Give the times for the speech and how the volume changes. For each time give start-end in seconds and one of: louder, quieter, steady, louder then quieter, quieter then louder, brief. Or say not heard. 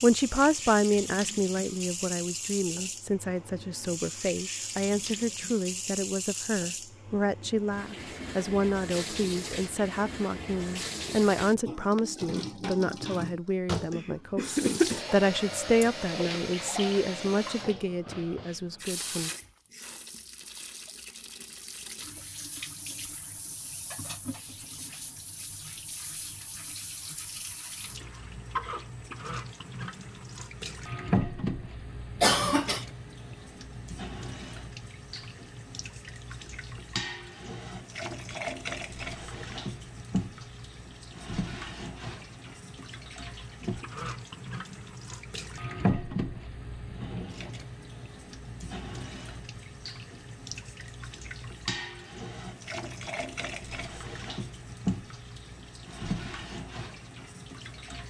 0.0-19.3 steady.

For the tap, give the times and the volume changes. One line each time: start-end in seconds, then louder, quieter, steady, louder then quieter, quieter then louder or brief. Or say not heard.
0.0-58.0 steady.